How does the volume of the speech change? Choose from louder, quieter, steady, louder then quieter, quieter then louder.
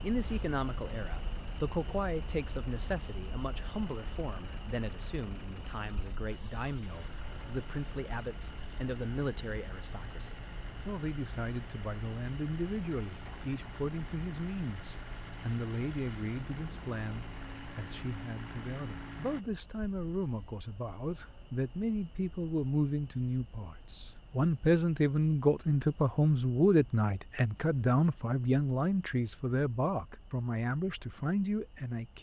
louder.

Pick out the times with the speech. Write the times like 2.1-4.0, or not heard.
0.0-32.1.